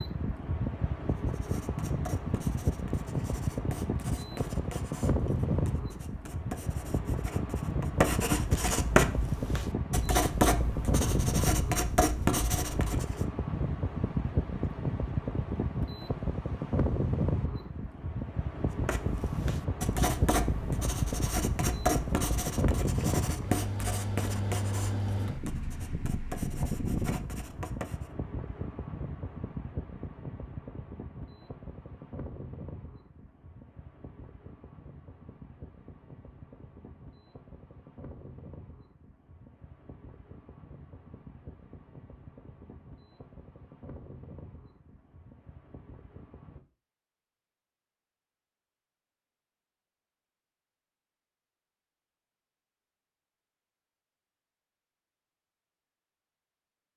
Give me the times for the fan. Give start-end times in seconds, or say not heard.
0.0-46.6.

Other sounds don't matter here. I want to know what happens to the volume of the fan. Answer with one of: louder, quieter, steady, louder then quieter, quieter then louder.
quieter.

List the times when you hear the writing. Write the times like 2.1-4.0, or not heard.
1.1-13.2, 18.8-28.1.